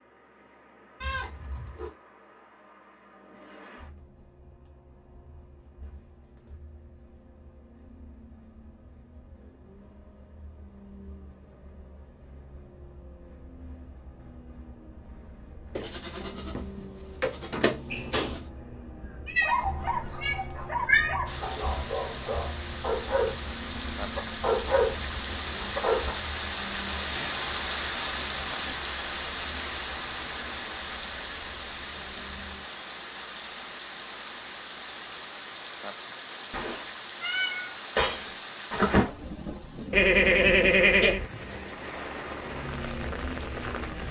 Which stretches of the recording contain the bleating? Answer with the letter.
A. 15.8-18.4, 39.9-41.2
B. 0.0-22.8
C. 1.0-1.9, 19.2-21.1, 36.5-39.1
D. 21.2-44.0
A.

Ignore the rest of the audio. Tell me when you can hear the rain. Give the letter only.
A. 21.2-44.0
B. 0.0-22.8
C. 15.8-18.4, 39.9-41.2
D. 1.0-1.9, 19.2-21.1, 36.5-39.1
A.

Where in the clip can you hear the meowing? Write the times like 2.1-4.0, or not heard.
1.0-1.9, 19.2-21.1, 36.5-39.1.